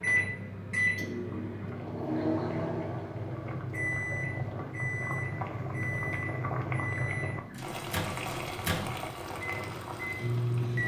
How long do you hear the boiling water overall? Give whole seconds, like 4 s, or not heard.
11 s.